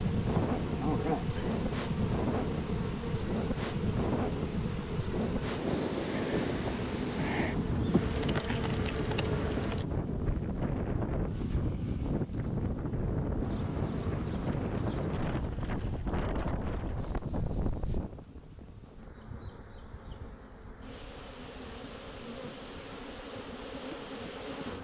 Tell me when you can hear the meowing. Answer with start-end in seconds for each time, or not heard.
not heard.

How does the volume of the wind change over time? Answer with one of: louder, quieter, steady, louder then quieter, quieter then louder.
quieter.